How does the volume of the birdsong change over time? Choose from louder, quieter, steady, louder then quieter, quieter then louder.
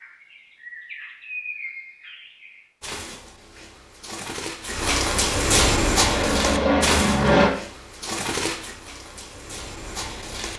louder then quieter.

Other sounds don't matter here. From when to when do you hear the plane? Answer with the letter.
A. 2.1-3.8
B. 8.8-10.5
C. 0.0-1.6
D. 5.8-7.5
D.